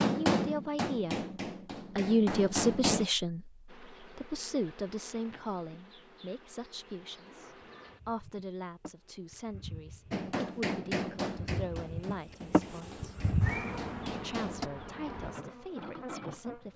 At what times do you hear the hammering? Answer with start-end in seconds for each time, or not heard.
0.0-3.0, 10.1-14.7.